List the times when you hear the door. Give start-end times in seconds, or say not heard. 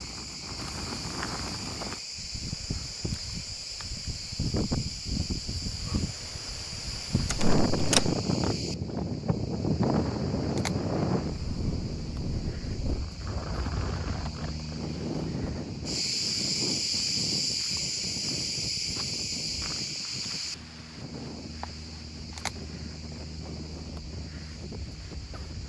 7.2-8.2.